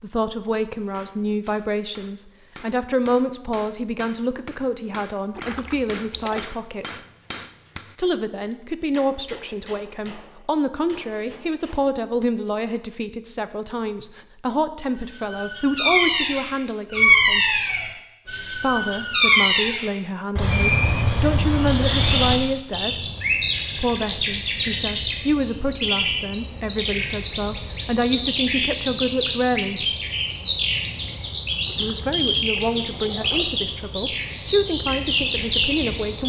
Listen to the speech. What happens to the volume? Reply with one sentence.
The loudness of the speech stays about the same.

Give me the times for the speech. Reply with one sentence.
You can hear the speech from 0.0 to 7.0 s, from 8.0 to 17.6 s, from 18.6 to 23.1 s, from 23.8 to 29.9 s and from 31.8 to 36.2 s.